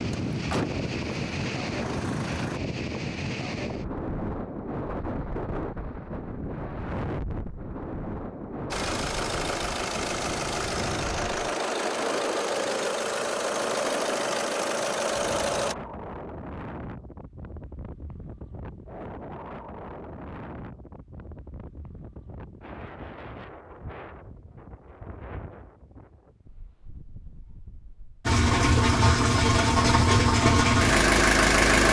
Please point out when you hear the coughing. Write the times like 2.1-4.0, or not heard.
not heard.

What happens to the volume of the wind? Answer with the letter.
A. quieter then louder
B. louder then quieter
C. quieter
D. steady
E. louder
C.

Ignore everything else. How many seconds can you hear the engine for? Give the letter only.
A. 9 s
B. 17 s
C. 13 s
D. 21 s
C.